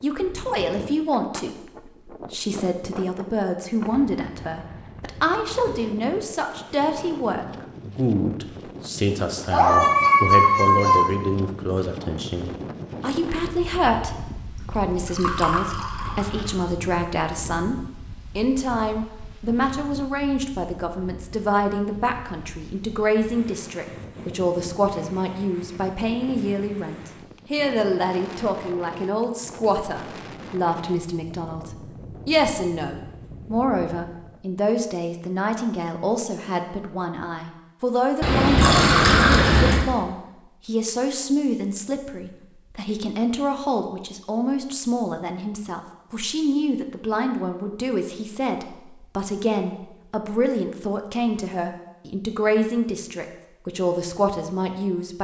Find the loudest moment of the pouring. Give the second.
39 s.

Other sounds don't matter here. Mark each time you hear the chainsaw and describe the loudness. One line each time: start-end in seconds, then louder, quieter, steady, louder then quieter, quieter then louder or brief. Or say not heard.
not heard.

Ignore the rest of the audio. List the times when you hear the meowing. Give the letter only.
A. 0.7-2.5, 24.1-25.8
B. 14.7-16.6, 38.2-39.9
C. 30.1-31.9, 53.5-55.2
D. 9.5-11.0
D.